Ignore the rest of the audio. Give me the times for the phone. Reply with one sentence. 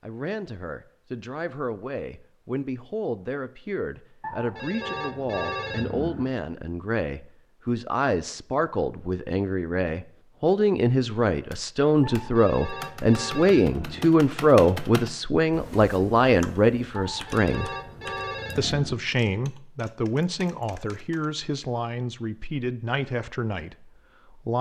The phone can be heard from 4.2 to 6.2 s, from 12.0 to 14.1 s and from 16.9 to 18.9 s.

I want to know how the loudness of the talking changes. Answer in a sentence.
The loudness of the talking goes up, then down.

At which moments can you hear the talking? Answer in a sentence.
The talking can be heard from 0.0 to 17.7 s and from 18.6 to 24.5 s.